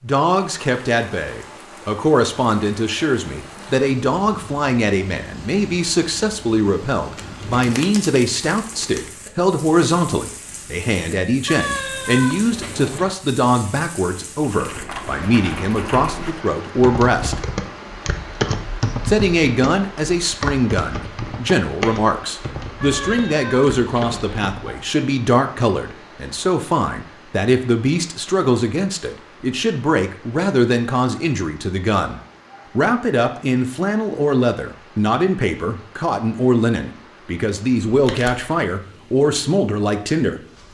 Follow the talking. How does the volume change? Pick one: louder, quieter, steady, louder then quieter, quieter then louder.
steady.